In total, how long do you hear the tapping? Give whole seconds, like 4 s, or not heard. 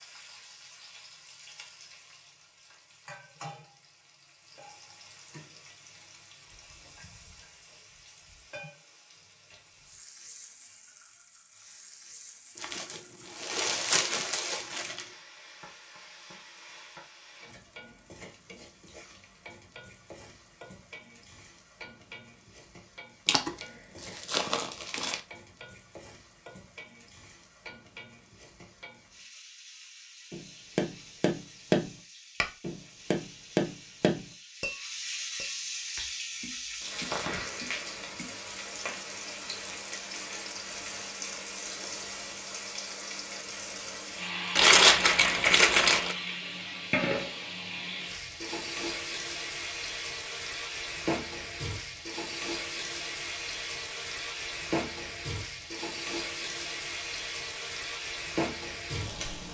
9 s.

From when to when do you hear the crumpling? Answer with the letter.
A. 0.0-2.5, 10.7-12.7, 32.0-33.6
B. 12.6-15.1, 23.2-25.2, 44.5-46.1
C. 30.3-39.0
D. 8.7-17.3
B.